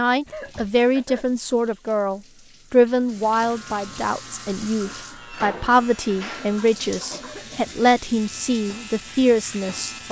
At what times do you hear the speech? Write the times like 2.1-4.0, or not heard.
0.0-10.0.